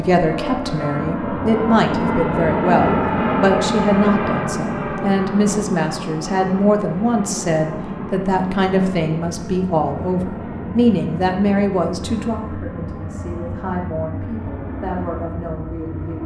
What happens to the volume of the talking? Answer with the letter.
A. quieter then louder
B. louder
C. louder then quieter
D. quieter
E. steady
D.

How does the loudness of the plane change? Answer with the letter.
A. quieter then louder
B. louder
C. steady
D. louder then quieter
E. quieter
E.